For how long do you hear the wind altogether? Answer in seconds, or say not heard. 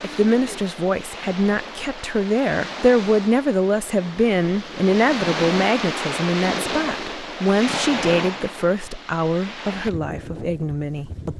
11 s.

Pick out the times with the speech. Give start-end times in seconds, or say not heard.
0.0-11.3.